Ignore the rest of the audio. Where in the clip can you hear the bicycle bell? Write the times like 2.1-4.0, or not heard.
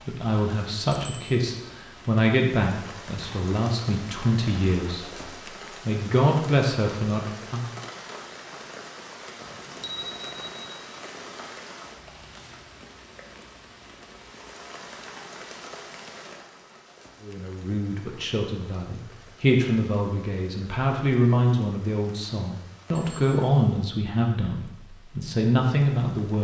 0.9-1.4, 9.4-10.7, 22.9-23.5.